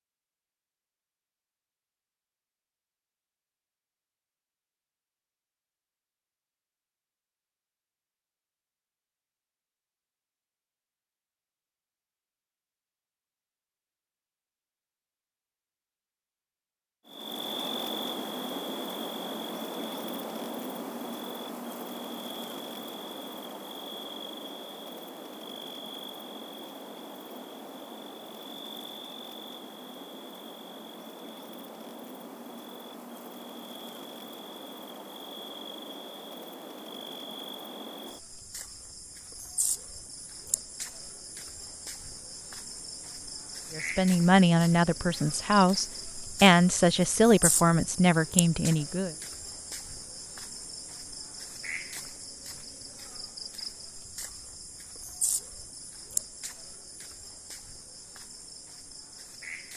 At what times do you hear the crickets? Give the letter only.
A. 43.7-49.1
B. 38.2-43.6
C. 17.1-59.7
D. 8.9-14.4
C.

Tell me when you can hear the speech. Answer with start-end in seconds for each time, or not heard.
43.7-49.1.